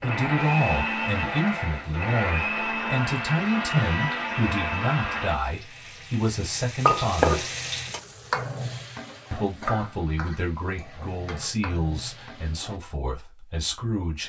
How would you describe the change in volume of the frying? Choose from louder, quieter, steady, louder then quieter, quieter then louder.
louder then quieter.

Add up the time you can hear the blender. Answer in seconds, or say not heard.
5 s.